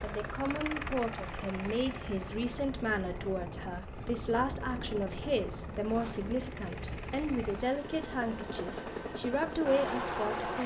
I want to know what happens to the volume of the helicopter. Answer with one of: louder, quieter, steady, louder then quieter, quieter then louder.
quieter then louder.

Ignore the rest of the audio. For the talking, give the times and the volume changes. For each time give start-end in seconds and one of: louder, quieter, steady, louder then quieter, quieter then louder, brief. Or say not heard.
0.0-10.6 steady.